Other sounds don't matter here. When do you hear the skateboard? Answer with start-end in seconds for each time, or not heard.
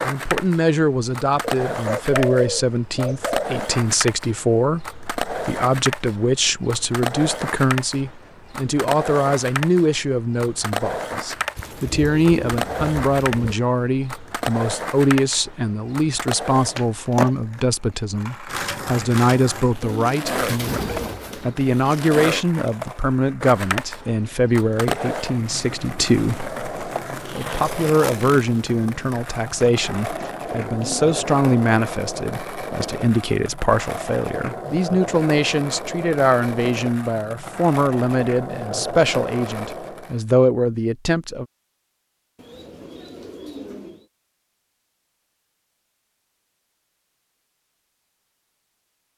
0.0-40.2.